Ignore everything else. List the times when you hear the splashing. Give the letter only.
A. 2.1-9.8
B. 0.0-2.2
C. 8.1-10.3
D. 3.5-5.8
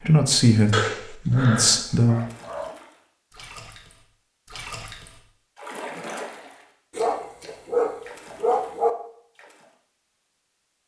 A.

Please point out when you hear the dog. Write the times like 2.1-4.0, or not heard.
0.7-2.7, 7.0-8.9.